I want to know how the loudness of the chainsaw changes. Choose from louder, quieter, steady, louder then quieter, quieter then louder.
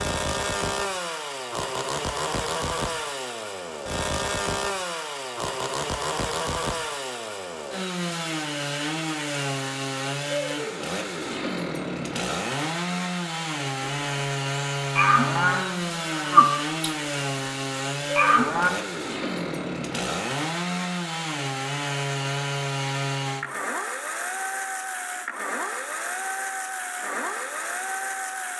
steady.